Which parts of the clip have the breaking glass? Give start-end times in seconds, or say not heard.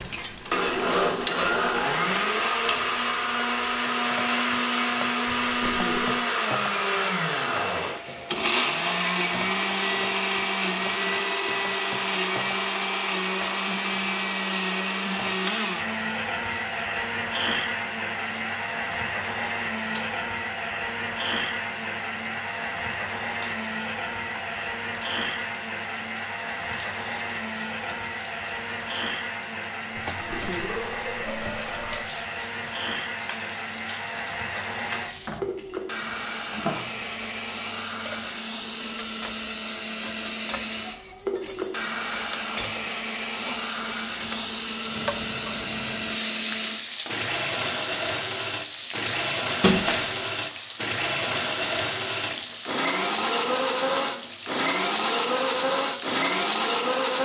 49.6-50.2.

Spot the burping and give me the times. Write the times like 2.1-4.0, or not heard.
5.2-6.2, 29.9-32.1.